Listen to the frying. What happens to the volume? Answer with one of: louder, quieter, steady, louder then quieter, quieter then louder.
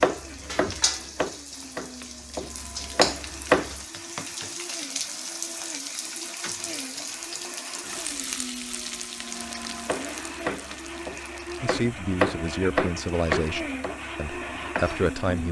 quieter.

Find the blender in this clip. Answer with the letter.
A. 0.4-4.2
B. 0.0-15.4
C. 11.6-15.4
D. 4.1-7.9
B.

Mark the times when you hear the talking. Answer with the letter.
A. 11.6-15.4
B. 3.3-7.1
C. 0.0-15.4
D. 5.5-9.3
A.